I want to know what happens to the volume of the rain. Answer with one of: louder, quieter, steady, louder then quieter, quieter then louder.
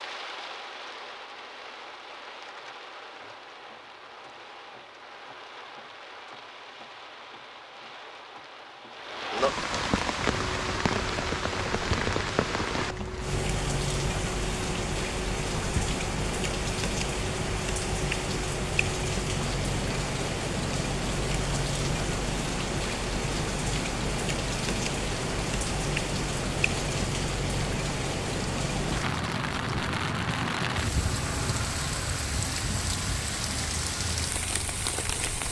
louder.